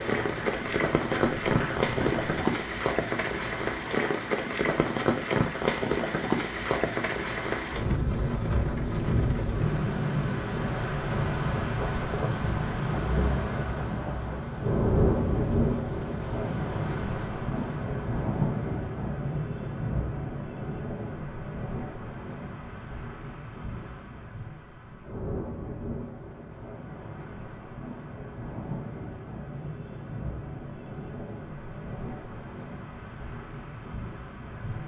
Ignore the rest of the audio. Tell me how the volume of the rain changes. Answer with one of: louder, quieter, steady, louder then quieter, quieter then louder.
quieter.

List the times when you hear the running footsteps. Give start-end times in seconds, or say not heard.
0.0-2.6.